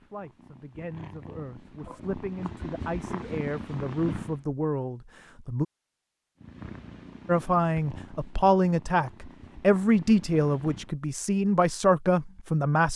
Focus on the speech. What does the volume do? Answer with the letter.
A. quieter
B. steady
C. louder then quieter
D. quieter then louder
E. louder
E.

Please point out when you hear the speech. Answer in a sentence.
The speech can be heard from 0.0 to 5.7 s and from 7.2 to 12.9 s.